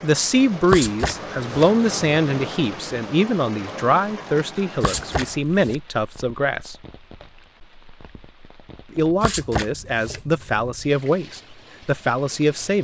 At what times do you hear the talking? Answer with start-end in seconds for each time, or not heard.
0.0-6.8, 8.9-12.7.